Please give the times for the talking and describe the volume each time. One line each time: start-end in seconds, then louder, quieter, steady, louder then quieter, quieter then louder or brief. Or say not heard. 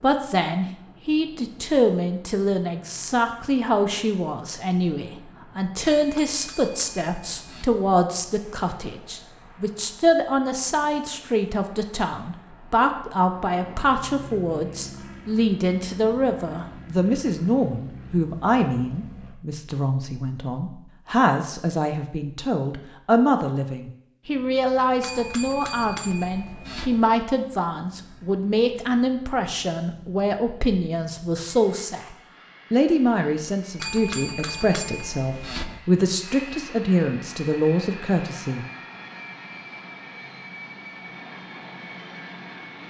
0.0-38.6 steady.